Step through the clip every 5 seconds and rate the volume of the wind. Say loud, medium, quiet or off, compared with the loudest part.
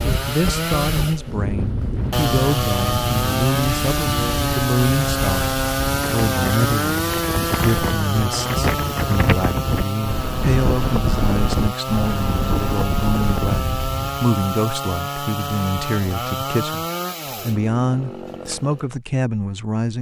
loud, loud, loud, off.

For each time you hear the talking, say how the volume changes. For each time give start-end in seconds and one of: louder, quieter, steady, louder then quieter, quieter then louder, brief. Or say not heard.
0.1-19.9 steady.